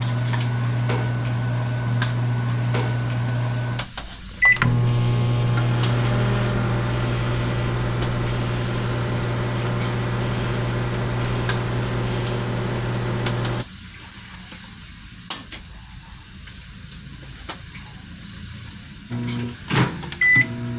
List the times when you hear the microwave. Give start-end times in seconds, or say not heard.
0.0-13.7, 19.1-20.7.